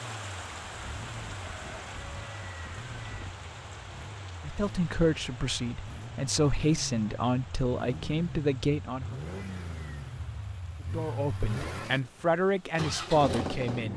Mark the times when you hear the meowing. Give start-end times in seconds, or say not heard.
not heard.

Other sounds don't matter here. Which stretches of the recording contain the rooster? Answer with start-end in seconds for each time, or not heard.
0.6-3.5.